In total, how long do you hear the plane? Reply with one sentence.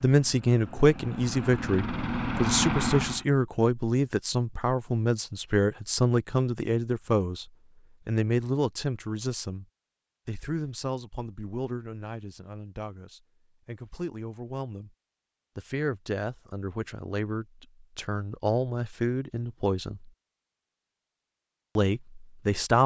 You can hear the plane for 3 seconds altogether.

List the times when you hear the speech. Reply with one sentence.
You can hear the speech from 0.0 to 9.7 s, from 10.2 to 14.9 s, from 15.6 to 20.1 s and from 21.8 to 22.8 s.